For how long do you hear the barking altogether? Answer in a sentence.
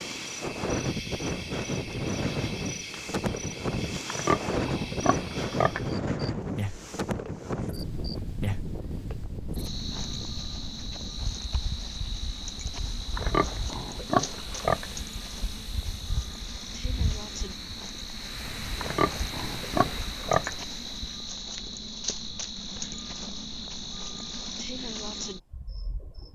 You can't hear the barking here.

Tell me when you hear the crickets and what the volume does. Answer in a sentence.
You can hear the crickets from 0.0 to 26.2 s, at a steady volume.